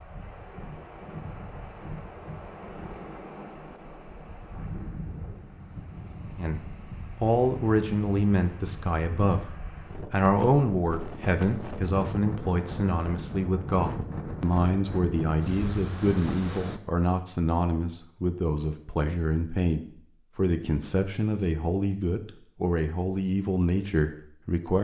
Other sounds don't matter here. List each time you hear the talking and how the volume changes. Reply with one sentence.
The talking can be heard from 6.3 to 24.8 s, at a steady volume.